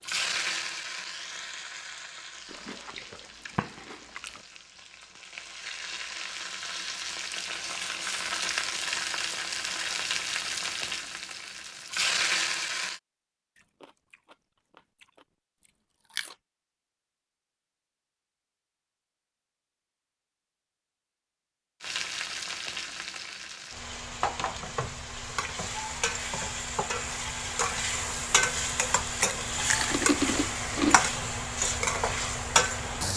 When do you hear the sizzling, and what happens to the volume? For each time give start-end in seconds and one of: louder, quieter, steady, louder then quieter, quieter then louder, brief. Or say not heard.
0.0-13.0 quieter then louder
21.8-33.1 louder.